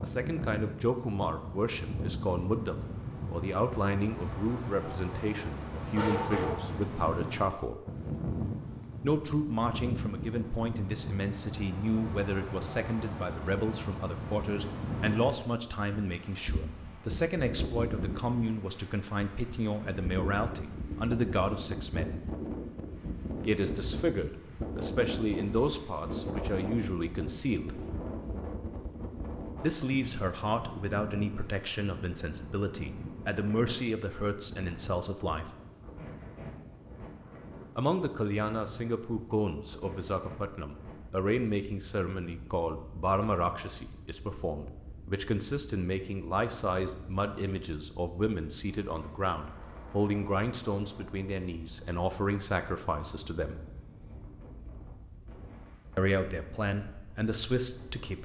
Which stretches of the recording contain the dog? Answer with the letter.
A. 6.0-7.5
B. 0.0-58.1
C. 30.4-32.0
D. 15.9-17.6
A.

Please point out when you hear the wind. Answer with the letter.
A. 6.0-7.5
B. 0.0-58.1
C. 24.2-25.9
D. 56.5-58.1
B.